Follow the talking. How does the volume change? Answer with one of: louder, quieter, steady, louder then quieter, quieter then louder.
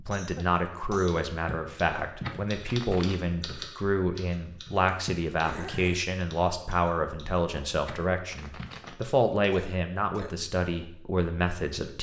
steady.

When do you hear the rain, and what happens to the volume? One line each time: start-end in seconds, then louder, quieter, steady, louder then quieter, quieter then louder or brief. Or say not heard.
not heard.